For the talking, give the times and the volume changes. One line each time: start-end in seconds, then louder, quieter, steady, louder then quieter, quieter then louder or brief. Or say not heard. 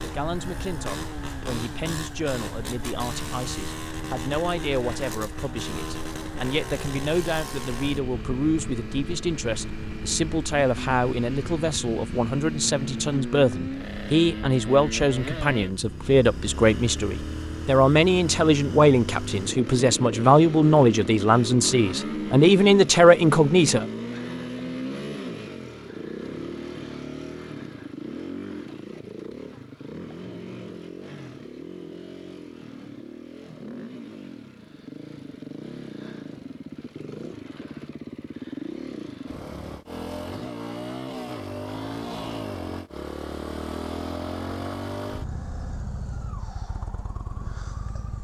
0.0-23.9 louder.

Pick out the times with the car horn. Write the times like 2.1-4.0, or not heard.
not heard.